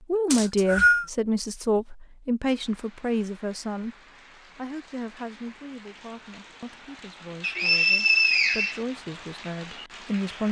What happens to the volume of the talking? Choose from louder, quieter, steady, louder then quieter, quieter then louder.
quieter then louder.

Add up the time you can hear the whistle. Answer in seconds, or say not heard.
2 s.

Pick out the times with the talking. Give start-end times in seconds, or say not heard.
0.1-4.0, 4.5-10.4.